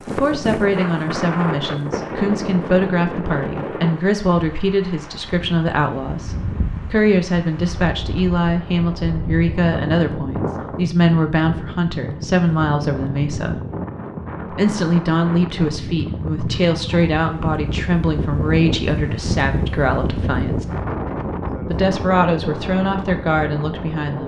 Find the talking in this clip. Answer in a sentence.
The talking can be heard from 0.1 to 13.6 s, from 14.5 to 20.6 s and from 21.7 to 24.2 s.